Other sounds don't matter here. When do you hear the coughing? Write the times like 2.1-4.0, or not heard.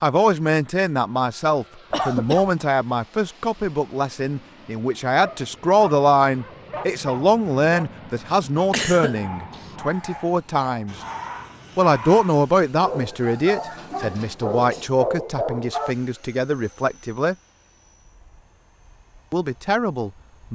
1.9-2.5, 8.7-9.6, 13.9-14.9.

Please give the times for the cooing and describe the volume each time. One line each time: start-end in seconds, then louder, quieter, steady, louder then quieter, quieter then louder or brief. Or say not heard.
not heard.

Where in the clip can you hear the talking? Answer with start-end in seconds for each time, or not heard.
0.0-10.9, 11.8-17.4, 19.3-20.5.